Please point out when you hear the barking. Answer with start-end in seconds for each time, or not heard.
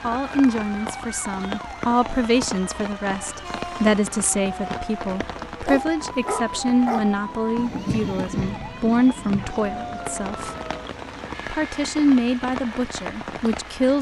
5.7-7.0.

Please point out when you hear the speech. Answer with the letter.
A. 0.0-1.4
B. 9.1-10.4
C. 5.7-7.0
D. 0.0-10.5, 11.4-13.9
D.